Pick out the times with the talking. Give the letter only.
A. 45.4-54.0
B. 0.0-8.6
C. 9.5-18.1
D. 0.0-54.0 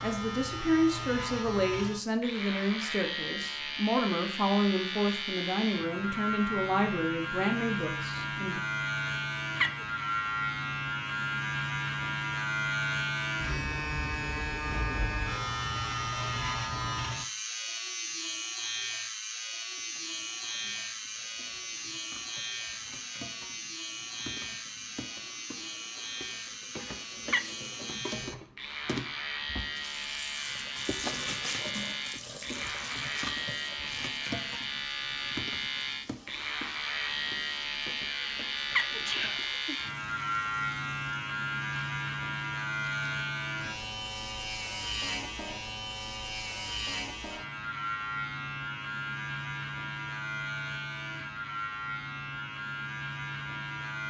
B.